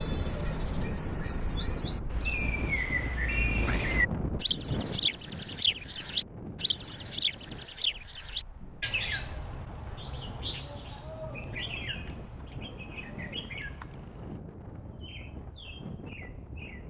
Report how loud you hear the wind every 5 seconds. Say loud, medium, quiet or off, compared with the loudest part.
loud, medium, medium, medium.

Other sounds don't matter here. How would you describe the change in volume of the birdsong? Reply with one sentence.
The volume of the birdsong goes down.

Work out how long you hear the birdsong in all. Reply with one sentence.
You can hear the birdsong for 17 seconds altogether.